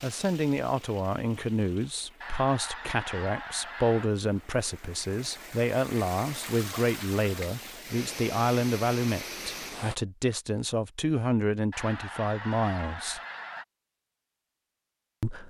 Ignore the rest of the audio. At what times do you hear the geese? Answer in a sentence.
The geese can be heard from 2.2 to 4.1 s and from 11.7 to 13.7 s.